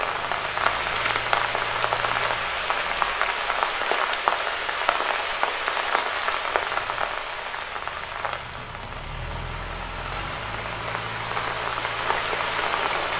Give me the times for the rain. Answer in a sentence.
The rain can be heard from 0.0 to 13.1 s.